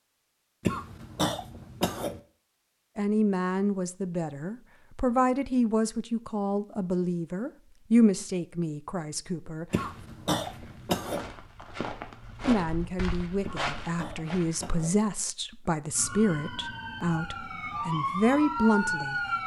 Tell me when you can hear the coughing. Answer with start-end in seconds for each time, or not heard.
0.7-2.2, 9.7-11.3, 13.4-15.0.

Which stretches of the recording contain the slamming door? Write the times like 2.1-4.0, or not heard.
not heard.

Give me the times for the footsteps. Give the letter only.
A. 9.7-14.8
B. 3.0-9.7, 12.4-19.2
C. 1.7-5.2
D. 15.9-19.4
A.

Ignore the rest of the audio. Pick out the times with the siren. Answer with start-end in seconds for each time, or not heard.
15.9-19.4.